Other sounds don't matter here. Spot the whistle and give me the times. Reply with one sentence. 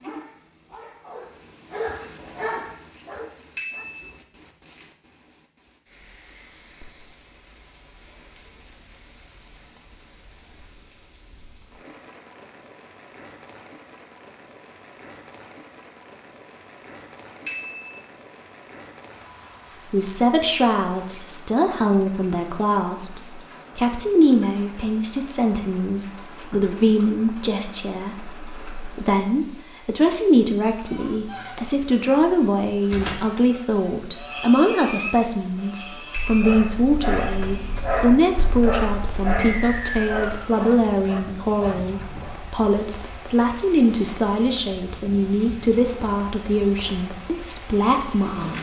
You can hear the whistle from 39.4 to 40.5 s.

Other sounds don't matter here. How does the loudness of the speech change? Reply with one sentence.
The volume of the speech stays about the same.